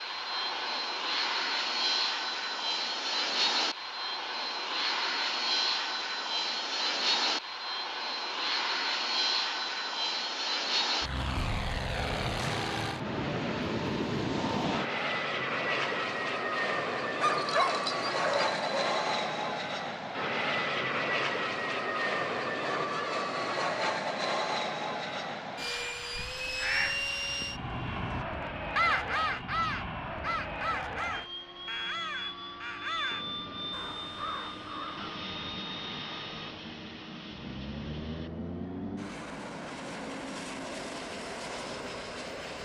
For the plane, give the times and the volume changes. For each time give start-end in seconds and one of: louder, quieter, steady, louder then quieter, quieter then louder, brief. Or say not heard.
0.0-42.5 quieter.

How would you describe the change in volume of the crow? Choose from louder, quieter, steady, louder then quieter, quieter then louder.
louder then quieter.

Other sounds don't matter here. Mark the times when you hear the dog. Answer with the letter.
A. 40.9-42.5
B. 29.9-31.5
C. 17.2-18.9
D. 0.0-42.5
C.